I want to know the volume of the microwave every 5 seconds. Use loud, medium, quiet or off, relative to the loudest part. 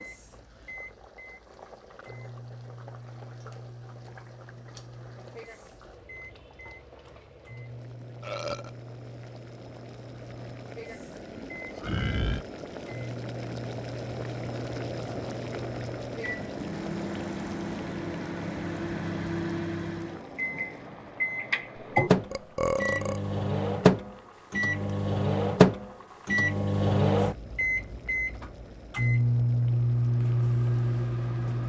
quiet, quiet, quiet, medium, loud, loud, loud.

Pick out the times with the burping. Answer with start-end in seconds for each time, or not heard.
8.2-8.7, 10.9-12.4, 22.3-23.2.